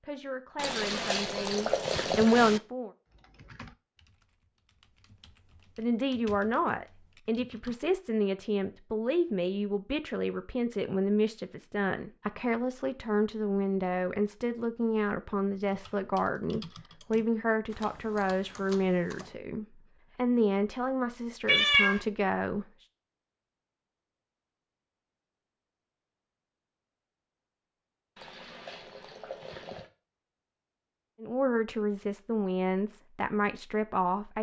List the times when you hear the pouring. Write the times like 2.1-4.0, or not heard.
0.6-2.6, 28.1-29.9.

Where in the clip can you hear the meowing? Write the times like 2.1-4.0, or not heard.
21.4-22.0.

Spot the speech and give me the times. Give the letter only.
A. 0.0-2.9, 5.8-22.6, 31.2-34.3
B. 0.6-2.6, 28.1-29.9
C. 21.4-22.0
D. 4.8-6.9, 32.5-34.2
A.